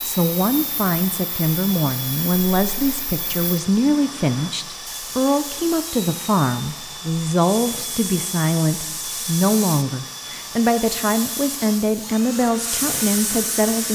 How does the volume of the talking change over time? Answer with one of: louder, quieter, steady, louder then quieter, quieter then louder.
steady.